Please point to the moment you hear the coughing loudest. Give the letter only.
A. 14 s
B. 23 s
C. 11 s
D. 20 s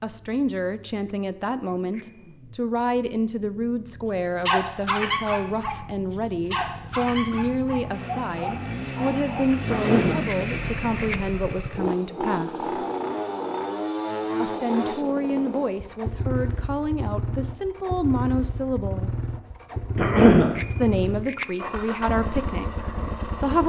D.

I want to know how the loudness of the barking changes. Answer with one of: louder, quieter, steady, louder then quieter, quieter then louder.
quieter.